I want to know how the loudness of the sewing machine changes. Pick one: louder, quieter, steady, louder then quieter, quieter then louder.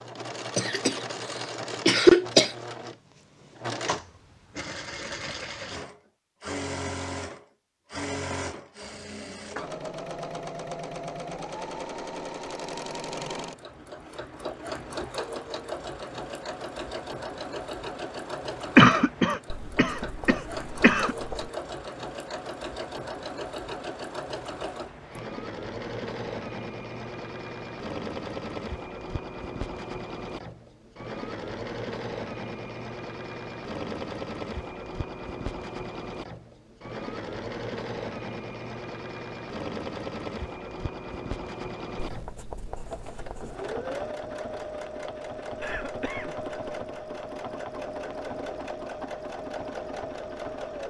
steady.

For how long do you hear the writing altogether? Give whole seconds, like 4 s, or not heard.
4 s.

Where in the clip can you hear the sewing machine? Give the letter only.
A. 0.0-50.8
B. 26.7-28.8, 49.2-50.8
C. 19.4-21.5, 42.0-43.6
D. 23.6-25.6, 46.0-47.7
A.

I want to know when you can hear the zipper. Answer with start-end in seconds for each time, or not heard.
not heard.